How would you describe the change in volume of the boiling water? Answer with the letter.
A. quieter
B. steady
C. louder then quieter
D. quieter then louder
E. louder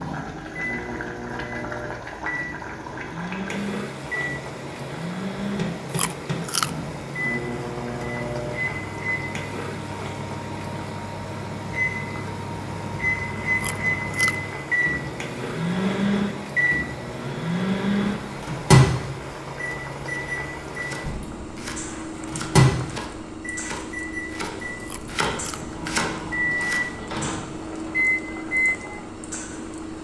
B.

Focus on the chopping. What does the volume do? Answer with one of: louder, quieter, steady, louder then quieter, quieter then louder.
louder.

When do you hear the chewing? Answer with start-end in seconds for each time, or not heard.
5.9-6.7, 13.6-14.3, 24.8-25.6.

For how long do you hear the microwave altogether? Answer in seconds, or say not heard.
30 s.